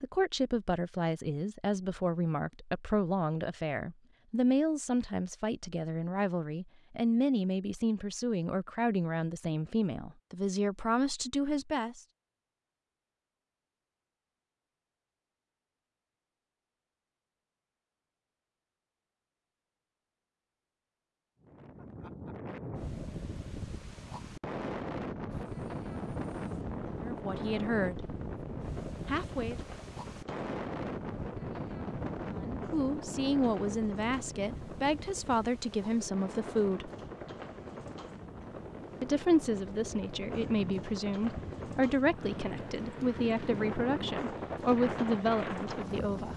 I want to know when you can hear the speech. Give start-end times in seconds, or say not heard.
0.0-12.1, 27.0-28.1, 29.1-29.6, 32.4-36.9, 39.0-46.3.